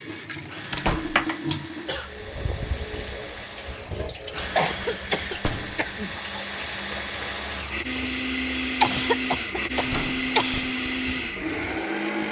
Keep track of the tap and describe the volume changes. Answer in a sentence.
The loudness of the tap goes down.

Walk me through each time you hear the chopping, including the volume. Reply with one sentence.
You can't hear the chopping here.